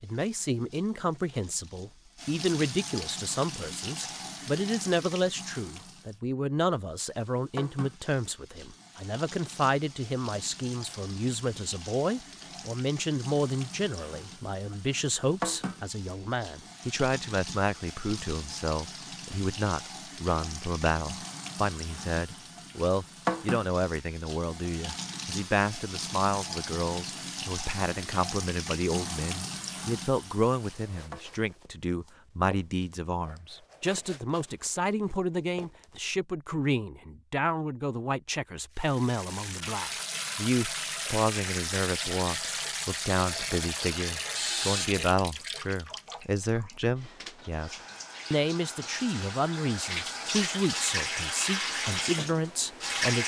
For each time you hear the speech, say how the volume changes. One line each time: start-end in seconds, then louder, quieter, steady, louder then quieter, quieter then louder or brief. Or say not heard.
0.0-53.2 steady.